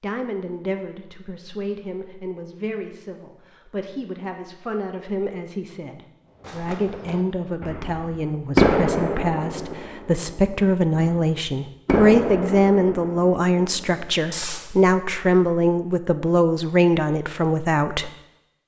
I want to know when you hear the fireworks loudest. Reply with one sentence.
The volume of the fireworks peaks at 9 seconds.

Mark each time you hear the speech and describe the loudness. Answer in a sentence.
You can hear the speech from 0.0 to 18.1 s, getting louder.